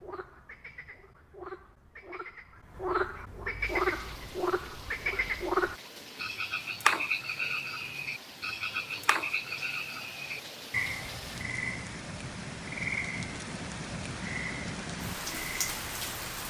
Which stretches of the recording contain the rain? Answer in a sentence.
The rain can be heard from 3.6 to 16.4 s.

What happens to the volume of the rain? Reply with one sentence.
The volume of the rain goes up.